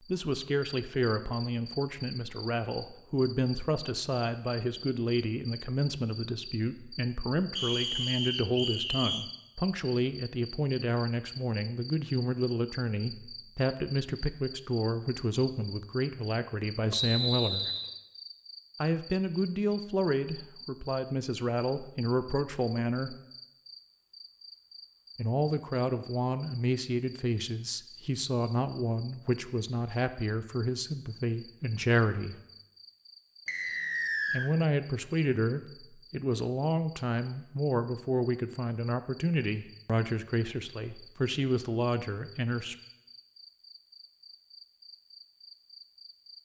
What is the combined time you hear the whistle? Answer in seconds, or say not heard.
4 s.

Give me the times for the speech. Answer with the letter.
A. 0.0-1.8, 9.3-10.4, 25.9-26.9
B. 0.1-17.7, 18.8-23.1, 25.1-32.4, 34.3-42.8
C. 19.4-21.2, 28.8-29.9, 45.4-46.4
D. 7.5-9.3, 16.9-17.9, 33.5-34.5
B.